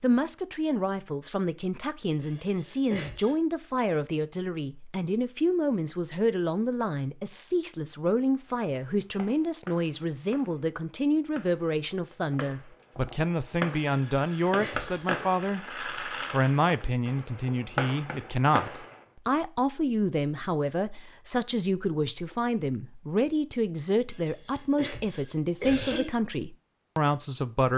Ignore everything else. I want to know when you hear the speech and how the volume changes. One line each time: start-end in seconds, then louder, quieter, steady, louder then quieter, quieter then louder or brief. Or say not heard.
0.0-27.7 steady.